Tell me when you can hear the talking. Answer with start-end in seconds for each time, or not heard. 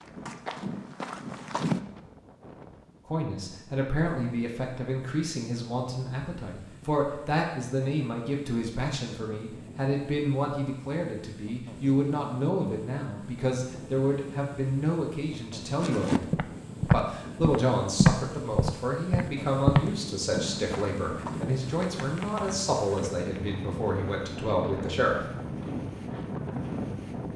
3.0-16.2, 16.9-25.3.